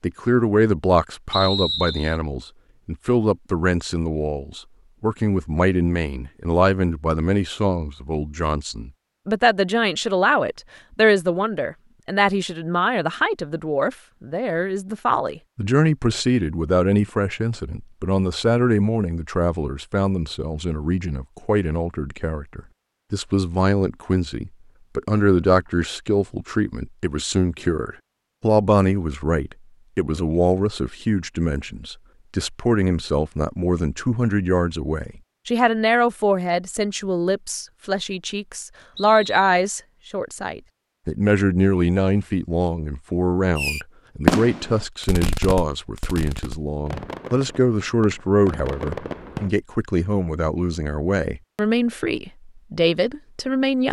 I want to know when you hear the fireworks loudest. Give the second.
44 s.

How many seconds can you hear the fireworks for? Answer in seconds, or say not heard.
6 s.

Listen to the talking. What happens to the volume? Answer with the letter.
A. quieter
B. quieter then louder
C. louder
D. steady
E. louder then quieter
D.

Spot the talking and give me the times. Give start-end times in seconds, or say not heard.
0.0-53.8.